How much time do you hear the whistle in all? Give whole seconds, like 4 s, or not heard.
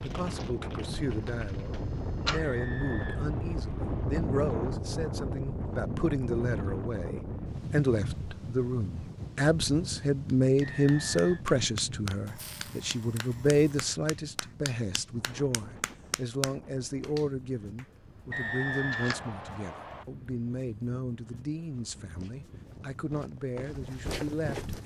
4 s.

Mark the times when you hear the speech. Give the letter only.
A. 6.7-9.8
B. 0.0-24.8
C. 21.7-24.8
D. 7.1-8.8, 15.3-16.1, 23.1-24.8
B.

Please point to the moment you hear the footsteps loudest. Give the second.
24 s.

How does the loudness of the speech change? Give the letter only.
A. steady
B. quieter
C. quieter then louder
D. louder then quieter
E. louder
D.